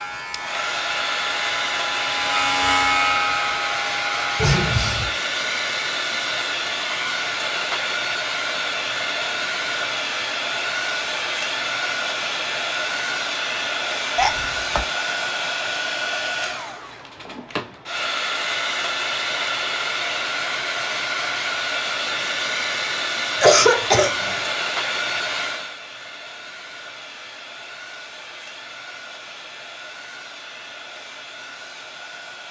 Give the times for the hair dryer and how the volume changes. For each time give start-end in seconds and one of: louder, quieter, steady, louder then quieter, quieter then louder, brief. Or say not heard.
0.0-32.4 quieter.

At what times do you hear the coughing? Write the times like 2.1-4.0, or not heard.
4.3-5.1, 14.2-14.8, 23.4-24.4.